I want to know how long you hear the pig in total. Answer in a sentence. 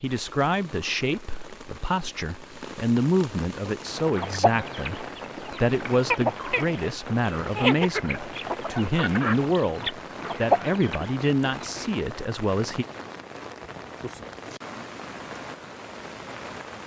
You can't hear the pig here.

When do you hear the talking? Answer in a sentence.
You can hear the talking from 0.0 to 12.8 s.